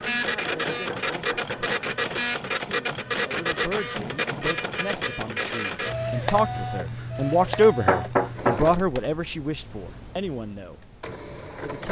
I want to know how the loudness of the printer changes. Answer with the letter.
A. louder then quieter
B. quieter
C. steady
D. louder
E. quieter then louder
B.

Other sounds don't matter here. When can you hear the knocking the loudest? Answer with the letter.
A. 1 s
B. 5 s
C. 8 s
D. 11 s
C.